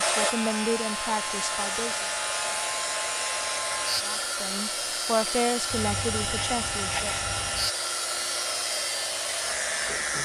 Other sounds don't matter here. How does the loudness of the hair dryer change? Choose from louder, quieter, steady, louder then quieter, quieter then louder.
steady.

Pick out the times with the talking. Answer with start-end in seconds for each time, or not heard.
0.0-2.0, 4.0-7.0.